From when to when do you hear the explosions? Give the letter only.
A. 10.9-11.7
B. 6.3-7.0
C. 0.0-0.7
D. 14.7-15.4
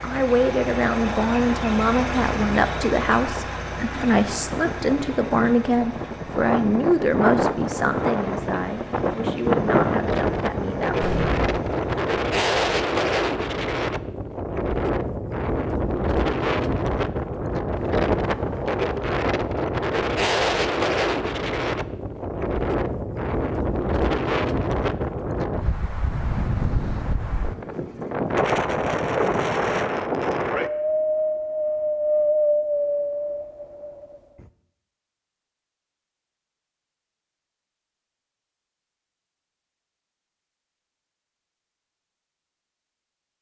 A.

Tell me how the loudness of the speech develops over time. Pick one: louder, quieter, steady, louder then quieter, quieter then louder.
quieter.